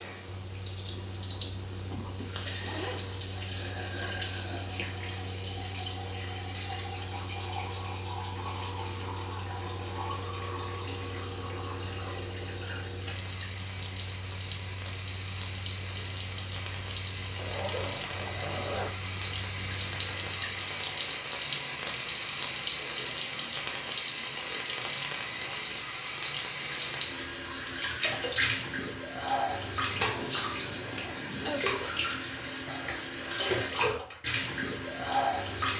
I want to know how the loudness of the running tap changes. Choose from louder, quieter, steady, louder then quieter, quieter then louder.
louder.